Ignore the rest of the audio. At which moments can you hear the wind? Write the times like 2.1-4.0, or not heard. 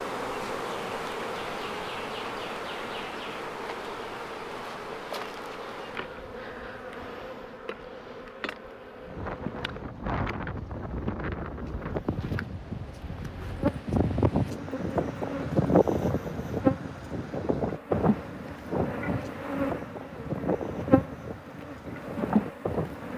9.0-23.1.